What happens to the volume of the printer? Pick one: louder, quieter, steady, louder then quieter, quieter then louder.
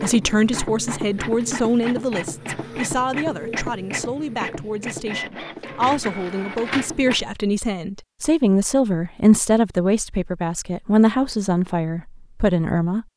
steady.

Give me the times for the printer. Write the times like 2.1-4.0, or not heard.
0.0-7.2.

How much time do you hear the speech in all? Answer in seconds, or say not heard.
13 s.